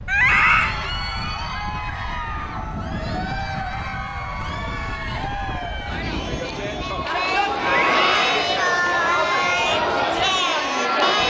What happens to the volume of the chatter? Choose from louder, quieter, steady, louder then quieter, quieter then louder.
louder.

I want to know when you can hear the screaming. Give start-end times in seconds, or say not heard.
0.1-0.8, 7.6-8.4.